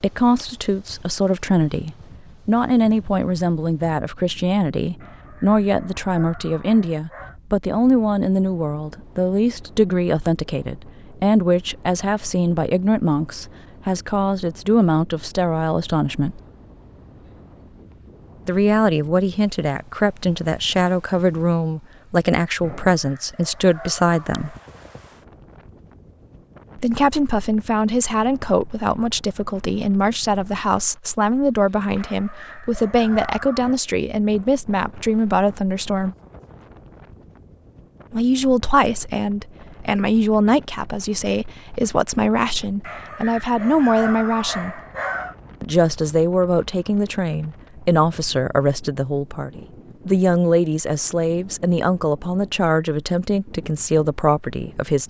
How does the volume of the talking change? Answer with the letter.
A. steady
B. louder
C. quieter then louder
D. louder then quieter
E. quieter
A.